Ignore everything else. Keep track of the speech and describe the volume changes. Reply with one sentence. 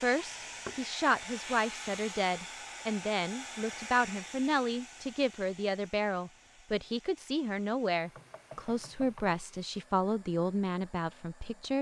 The volume of the speech stays about the same.